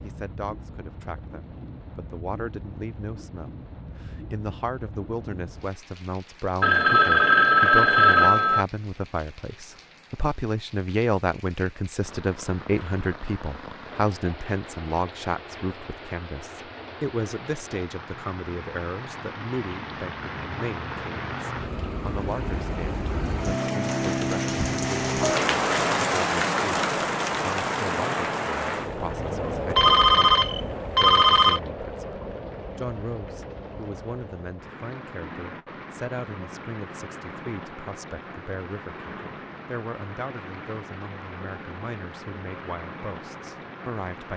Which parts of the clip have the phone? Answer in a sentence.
You can hear the phone from 6.6 to 8.7 s and from 29.7 to 31.6 s.